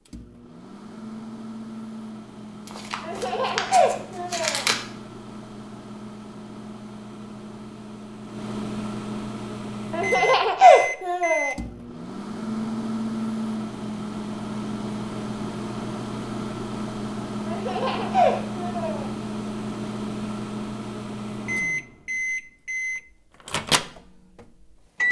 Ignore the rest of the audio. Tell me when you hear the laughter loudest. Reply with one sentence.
The loudest moment of the laughter is at 11 seconds.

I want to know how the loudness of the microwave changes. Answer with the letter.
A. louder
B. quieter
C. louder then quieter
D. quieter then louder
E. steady
A.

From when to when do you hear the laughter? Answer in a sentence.
The laughter can be heard from 3.0 to 4.7 s, from 9.9 to 11.6 s and from 17.4 to 19.1 s.